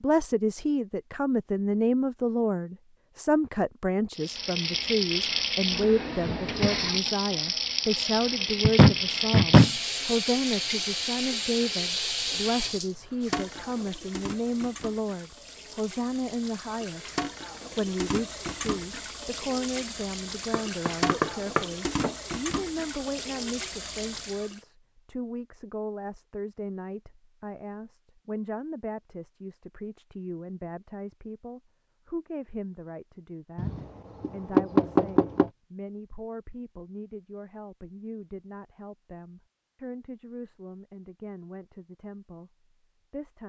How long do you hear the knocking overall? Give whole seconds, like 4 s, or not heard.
5 s.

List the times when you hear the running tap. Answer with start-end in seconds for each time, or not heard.
4.2-24.6.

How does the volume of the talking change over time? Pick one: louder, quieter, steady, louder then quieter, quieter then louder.
quieter.